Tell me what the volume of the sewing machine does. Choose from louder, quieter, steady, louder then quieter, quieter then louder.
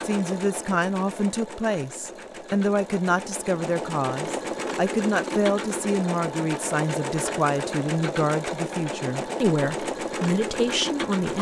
louder.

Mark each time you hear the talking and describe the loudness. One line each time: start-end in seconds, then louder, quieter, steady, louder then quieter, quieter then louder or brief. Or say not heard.
0.0-11.3 steady.